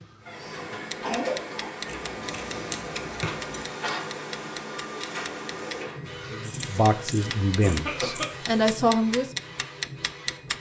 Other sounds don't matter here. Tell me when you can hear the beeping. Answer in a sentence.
The beeping can't be heard in this clip.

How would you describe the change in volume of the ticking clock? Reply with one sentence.
The loudness of the ticking clock goes up.